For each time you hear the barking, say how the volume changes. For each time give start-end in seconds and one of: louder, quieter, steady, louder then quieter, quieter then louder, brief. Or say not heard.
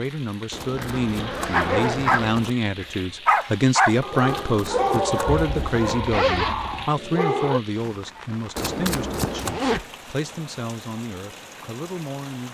1.5-7.6 quieter.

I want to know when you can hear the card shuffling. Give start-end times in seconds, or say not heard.
0.5-2.5, 4.2-6.1, 8.6-9.6.